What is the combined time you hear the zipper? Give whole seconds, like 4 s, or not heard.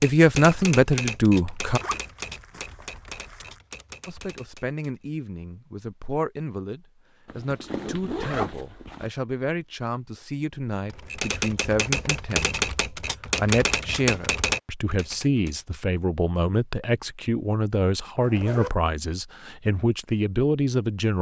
4 s.